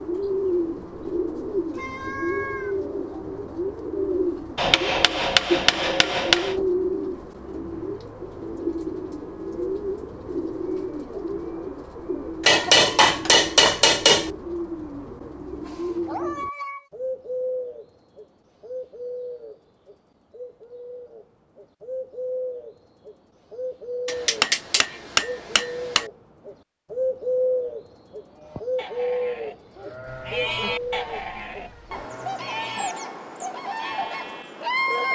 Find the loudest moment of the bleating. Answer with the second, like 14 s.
31 s.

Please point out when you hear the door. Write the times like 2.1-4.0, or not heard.
not heard.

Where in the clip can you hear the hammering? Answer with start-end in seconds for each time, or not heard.
4.5-6.5, 12.4-14.3, 24.1-26.1.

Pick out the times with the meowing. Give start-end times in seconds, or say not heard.
1.7-2.8, 15.6-16.9, 30.1-32.1.